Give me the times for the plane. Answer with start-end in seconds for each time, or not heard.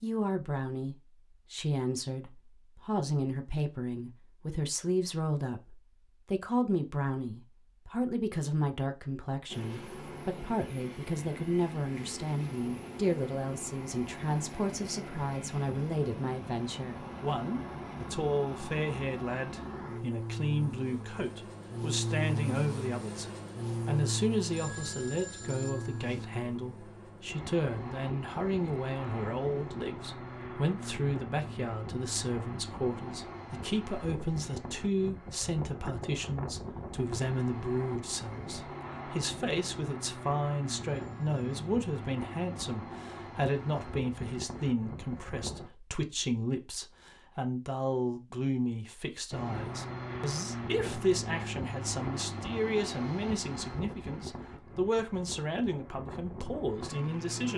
9.4-45.7, 49.3-57.5.